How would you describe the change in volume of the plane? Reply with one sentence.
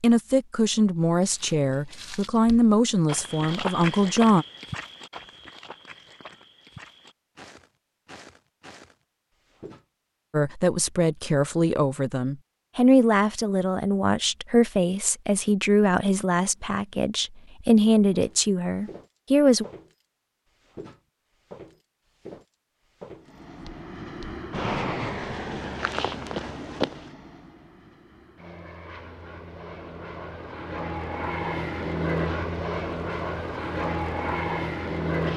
The volume of the plane goes down, then up.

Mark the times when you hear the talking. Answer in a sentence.
The talking can be heard from 0.0 to 4.5 s and from 10.3 to 19.6 s.